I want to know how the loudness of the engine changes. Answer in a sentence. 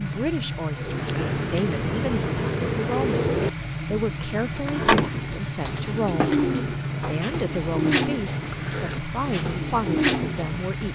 The loudness of the engine stays about the same.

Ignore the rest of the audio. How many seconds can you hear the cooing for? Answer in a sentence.
You can hear the cooing for 10 seconds altogether.